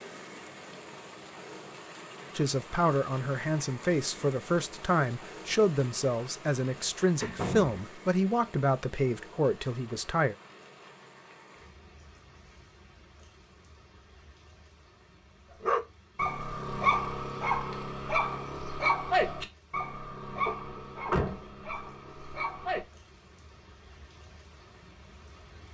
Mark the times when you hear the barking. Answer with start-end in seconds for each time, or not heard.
15.6-22.9.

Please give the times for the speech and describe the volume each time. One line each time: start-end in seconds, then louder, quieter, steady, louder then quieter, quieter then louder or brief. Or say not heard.
2.4-10.3 steady.